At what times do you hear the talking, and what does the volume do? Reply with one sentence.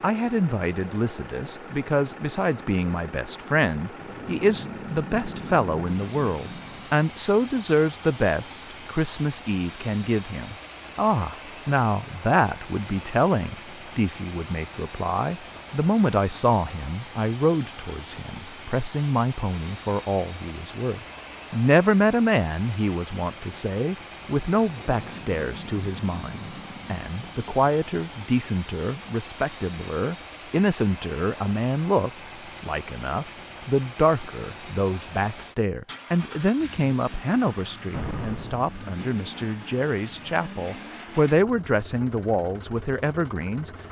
The talking can be heard from 0.0 to 43.7 s, at a steady volume.